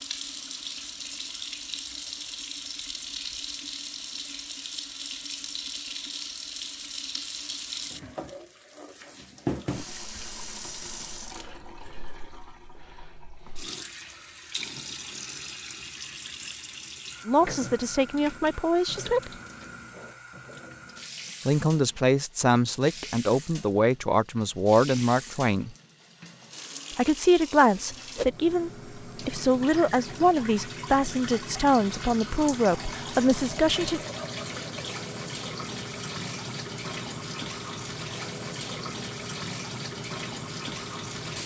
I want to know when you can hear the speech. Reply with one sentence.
The speech can be heard from 17.2 to 19.3 s, from 21.4 to 25.8 s and from 26.9 to 34.0 s.